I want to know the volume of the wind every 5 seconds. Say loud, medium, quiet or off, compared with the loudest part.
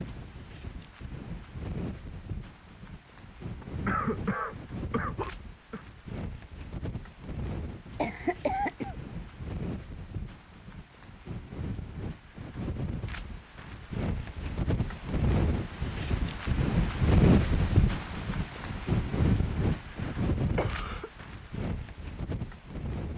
quiet, quiet, medium, loud, medium.